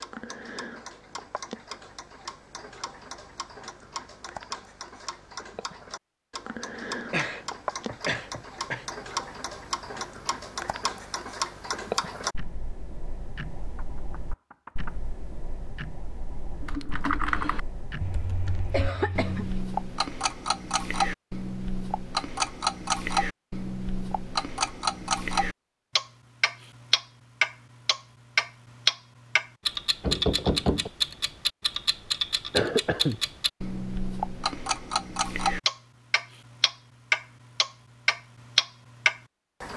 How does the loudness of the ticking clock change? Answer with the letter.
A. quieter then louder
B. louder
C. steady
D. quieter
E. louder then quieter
B.